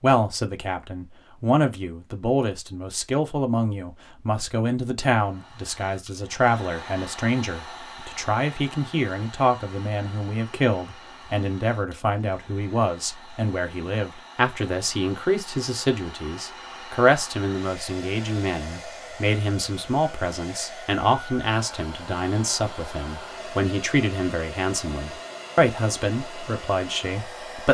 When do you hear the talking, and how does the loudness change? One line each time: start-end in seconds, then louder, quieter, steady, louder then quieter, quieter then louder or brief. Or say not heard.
0.0-27.7 steady.